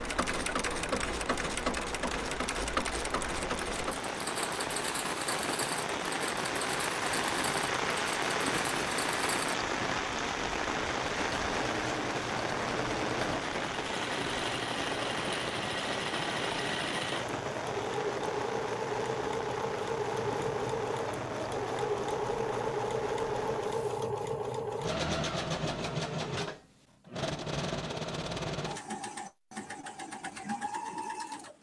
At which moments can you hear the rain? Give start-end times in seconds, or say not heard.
0.0-24.1.